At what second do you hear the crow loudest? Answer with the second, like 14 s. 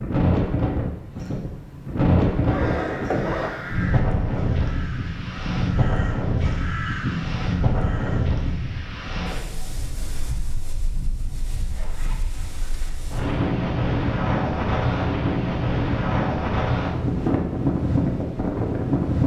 7 s.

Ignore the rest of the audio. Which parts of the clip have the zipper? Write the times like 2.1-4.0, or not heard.
2.4-4.0, 11.7-13.1.